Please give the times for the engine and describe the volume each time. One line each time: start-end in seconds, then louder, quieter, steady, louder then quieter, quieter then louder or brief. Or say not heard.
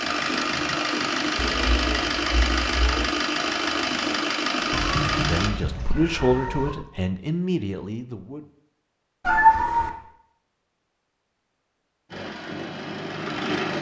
0.0-5.5 steady
12.1-13.7 brief.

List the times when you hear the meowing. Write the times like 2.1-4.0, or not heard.
1.4-3.1, 4.7-6.8, 9.2-9.9.